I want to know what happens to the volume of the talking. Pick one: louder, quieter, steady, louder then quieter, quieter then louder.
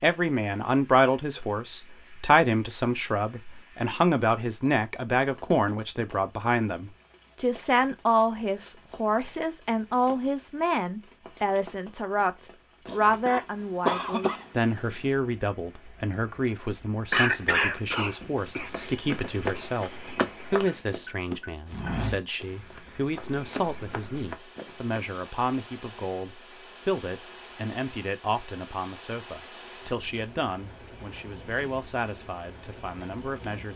quieter.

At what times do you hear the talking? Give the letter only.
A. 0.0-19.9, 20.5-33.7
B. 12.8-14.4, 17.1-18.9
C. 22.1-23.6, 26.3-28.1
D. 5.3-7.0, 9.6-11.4
A.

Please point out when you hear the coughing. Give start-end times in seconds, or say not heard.
12.8-14.4, 17.1-18.9.